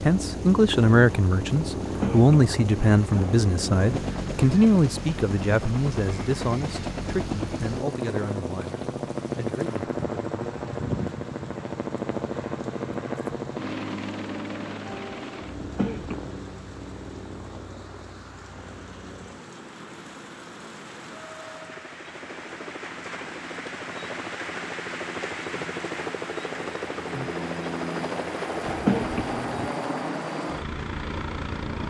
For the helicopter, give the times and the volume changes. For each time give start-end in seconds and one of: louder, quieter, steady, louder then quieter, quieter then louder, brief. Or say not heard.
0.0-31.8 quieter then louder.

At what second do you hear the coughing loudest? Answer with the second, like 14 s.
29 s.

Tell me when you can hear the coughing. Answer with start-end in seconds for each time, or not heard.
1.8-3.5, 15.6-16.4, 28.6-29.7.